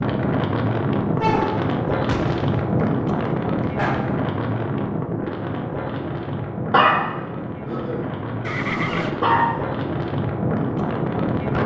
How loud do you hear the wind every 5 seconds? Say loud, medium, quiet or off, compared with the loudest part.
loud, medium, loud.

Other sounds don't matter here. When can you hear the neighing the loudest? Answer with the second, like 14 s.
9 s.